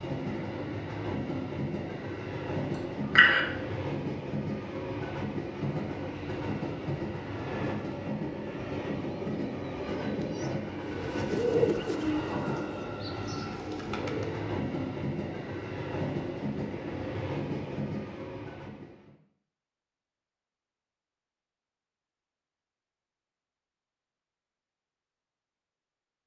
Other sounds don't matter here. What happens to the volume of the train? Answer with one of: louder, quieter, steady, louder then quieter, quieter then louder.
steady.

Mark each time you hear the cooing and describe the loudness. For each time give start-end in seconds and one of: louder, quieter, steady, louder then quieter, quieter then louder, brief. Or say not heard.
9.1-14.5 louder then quieter.